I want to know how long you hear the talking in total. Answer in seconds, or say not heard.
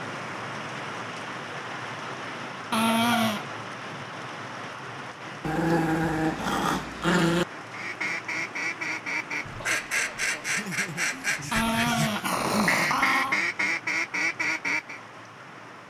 not heard.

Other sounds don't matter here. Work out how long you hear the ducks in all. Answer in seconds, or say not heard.
7 s.